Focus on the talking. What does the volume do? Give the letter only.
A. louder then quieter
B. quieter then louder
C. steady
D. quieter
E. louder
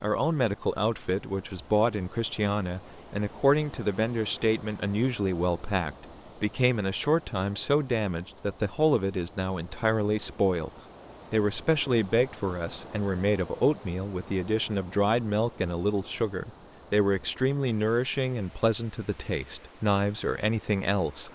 C.